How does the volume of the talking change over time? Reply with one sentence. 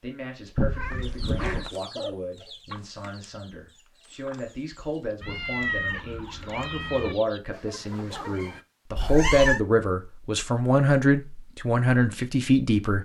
The loudness of the talking goes up.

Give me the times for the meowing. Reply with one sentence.
You can hear the meowing from 0.6 to 1.7 s, from 5.2 to 7.2 s and from 8.9 to 9.6 s.